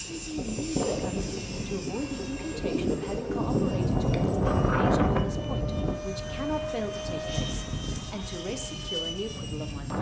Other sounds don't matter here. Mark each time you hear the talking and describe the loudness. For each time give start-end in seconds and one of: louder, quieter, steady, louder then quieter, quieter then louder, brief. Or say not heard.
0.1-9.9 steady.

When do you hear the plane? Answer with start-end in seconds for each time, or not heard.
0.0-9.9.